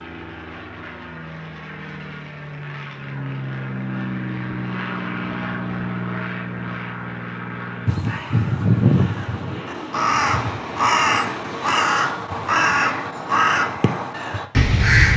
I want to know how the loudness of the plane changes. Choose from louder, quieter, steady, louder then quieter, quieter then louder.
louder then quieter.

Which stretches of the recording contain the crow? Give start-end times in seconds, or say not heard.
7.8-15.1.